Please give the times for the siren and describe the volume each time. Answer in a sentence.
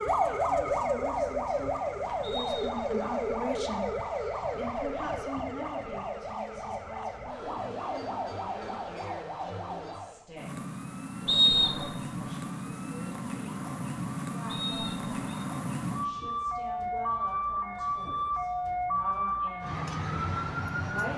You can hear the siren from 0.0 to 21.1 s, getting quieter then louder.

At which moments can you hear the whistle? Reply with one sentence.
The whistle can be heard from 2.2 to 3.0 s, from 11.2 to 11.9 s and from 14.4 to 15.4 s.